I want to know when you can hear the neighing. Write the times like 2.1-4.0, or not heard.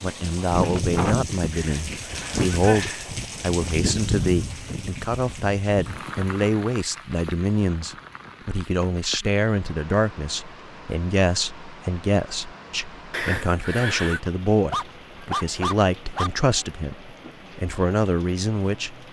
1.5-3.1, 13.1-14.2.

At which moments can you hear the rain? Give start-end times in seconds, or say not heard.
0.0-19.0.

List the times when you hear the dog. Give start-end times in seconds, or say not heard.
14.7-16.3.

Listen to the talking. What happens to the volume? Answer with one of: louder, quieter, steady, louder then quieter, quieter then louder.
steady.